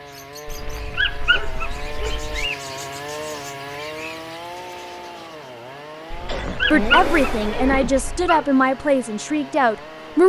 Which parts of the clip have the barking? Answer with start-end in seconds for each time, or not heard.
0.5-2.5, 6.1-8.4.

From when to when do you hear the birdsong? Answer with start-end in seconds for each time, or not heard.
0.0-5.5.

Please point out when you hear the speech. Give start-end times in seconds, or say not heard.
6.7-10.2.